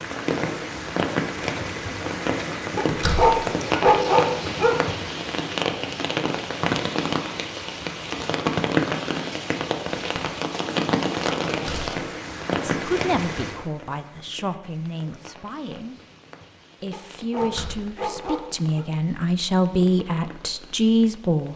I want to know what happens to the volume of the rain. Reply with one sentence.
The loudness of the rain goes down.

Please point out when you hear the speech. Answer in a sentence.
You can hear the speech from 12.7 to 15.9 s and from 16.8 to 21.5 s.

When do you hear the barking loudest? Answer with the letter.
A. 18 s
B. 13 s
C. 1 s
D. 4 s
D.